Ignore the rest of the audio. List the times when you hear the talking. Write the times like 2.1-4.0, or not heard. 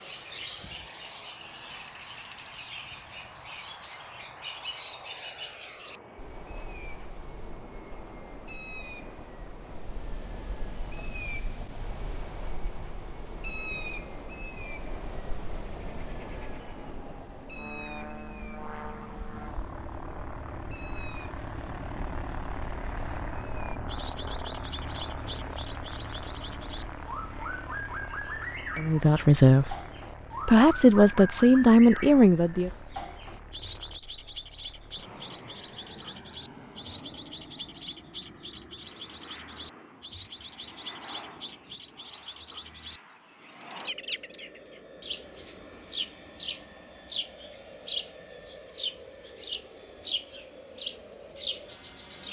28.8-29.8, 30.4-32.7.